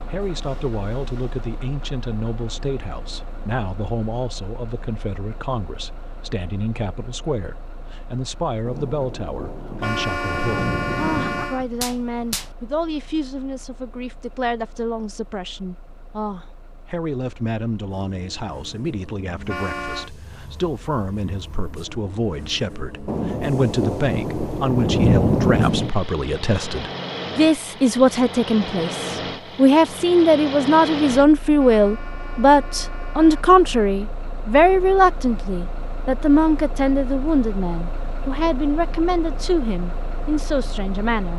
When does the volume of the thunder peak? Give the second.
25 s.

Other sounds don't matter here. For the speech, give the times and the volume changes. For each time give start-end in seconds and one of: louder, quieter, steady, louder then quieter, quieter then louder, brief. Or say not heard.
0.1-41.3 louder.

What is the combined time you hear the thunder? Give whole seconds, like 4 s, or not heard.
7 s.